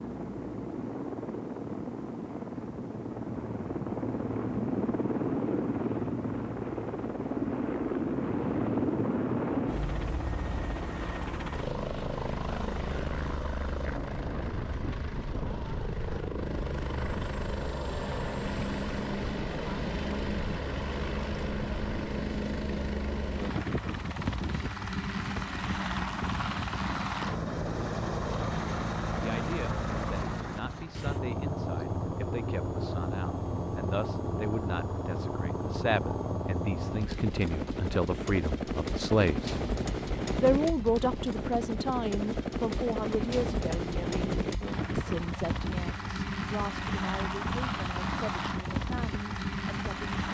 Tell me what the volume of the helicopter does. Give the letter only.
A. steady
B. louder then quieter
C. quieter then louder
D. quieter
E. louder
A.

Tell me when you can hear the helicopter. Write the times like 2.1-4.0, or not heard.
0.0-50.2.